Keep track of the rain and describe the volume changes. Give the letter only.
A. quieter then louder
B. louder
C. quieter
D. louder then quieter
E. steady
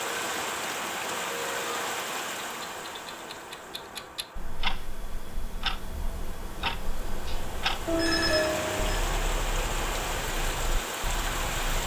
A.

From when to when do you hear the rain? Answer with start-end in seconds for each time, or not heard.
0.0-11.8.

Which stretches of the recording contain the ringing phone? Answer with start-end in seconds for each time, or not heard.
7.8-9.0.